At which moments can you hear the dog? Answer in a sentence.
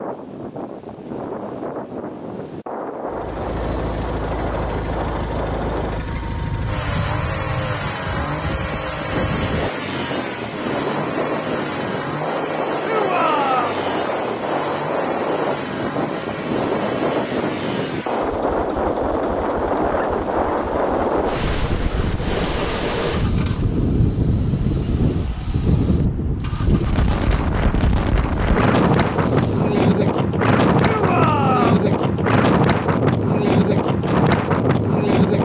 The dog can't be heard in this clip.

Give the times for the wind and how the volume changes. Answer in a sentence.
The wind can be heard from 0.0 to 35.4 s, getting louder.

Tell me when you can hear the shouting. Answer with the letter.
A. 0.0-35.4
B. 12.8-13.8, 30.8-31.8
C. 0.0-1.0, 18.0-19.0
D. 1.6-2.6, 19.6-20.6
B.